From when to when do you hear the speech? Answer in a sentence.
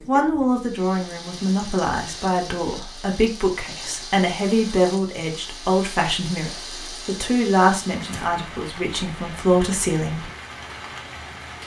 You can hear the speech from 0.1 to 10.2 s.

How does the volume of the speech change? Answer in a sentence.
The loudness of the speech stays about the same.